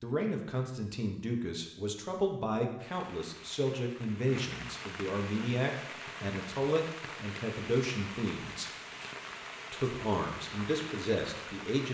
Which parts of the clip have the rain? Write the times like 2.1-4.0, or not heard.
2.8-11.8.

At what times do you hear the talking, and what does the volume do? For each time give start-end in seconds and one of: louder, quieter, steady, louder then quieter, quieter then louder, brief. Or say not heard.
0.0-8.7 steady
9.7-11.8 brief.